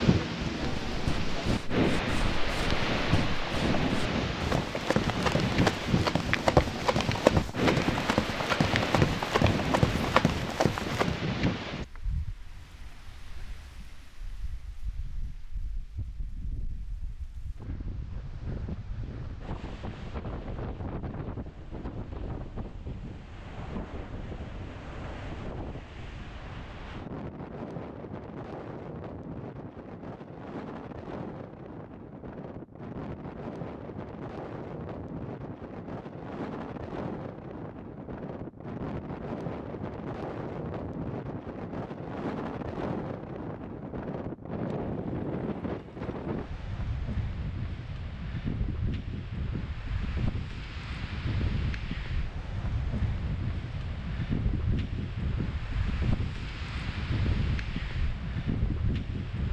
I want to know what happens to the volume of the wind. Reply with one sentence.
The loudness of the wind goes down, then up.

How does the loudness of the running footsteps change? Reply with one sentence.
The loudness of the running footsteps goes up.